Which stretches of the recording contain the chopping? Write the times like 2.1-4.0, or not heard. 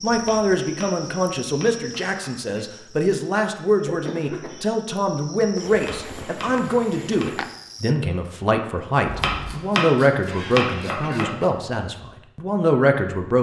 0.1-2.4, 5.7-7.3, 9.1-11.4.